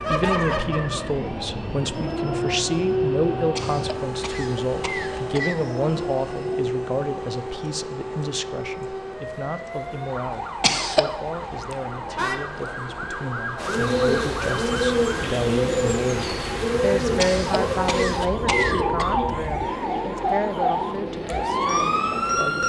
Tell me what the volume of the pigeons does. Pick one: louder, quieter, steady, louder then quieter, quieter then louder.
quieter.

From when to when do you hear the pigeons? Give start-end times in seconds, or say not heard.
13.6-22.6.